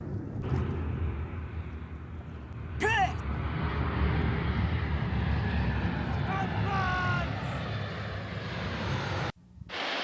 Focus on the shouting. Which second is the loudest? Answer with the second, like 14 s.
3 s.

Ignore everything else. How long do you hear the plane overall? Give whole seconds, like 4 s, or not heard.
10 s.